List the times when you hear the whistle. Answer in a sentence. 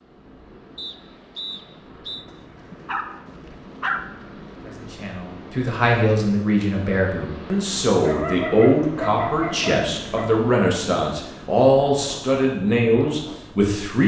You can hear the whistle from 0.8 to 2.2 s.